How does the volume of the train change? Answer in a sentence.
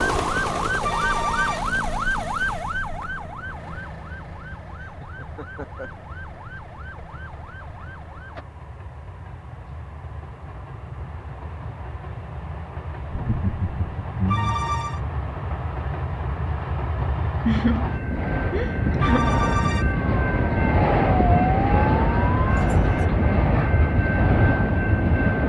The volume of the train goes up.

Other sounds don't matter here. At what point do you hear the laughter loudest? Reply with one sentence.
The volume of the laughter peaks at 18 seconds.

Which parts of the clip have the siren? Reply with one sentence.
The siren can be heard from 0.0 to 8.4 s and from 19.4 to 23.1 s.